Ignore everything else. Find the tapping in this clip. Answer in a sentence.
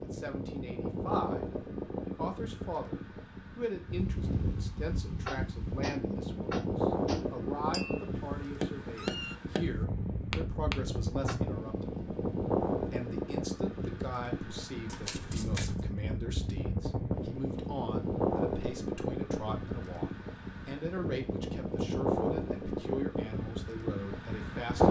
You can hear the tapping from 5.2 to 11.3 s.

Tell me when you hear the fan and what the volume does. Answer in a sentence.
The fan can be heard from 0.0 to 24.8 s, at a steady volume.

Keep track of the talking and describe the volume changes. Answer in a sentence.
The volume of the talking stays about the same.